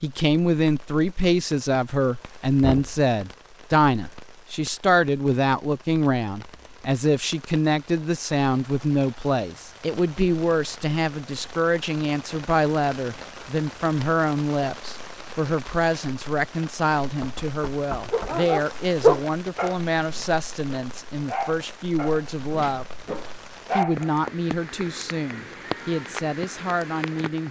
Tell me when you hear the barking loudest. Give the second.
19 s.